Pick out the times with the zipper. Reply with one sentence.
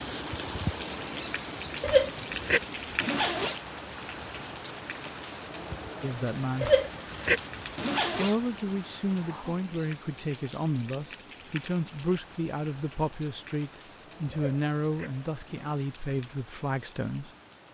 You can hear the zipper from 1.8 to 3.5 s, from 6.6 to 8.3 s and from 14.3 to 15.8 s.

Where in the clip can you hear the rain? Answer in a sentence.
The rain can be heard from 0.0 to 17.6 s.